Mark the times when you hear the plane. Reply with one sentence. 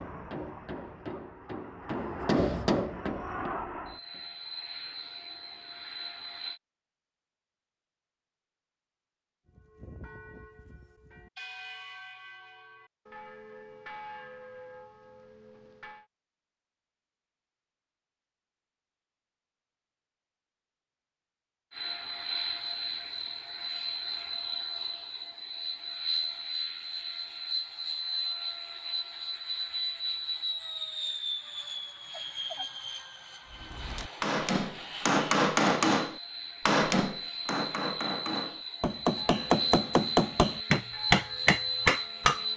You can hear the plane from 0.0 to 6.6 s and from 21.7 to 42.5 s.